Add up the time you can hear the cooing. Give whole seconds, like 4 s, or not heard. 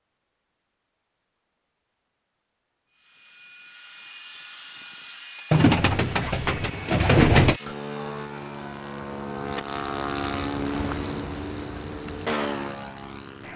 2 s.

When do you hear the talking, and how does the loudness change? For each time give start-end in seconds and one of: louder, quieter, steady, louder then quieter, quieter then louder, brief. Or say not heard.
not heard.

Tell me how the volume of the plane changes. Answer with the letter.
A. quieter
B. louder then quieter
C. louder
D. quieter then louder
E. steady
C.